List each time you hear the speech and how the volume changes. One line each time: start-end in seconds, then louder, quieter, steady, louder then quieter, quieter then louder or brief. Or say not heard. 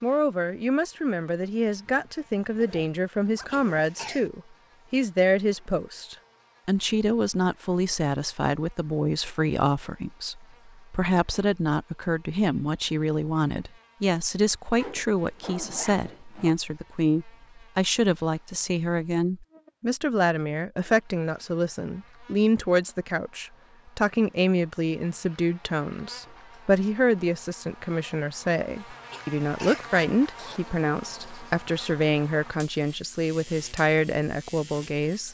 0.0-35.2 steady.